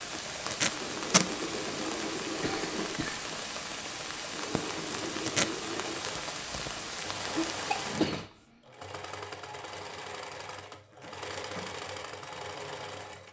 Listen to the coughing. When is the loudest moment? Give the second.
8 s.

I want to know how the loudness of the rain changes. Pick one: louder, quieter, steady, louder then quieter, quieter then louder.
steady.